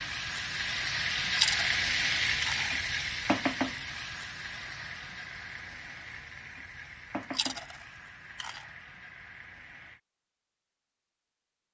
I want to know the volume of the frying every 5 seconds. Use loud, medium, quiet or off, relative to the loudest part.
loud, quiet, off.